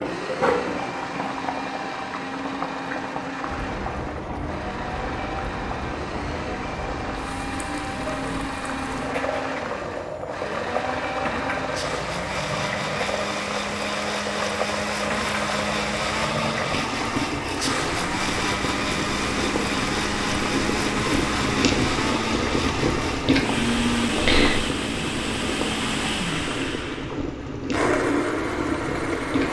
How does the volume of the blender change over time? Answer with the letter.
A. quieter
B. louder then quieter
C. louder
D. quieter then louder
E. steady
C.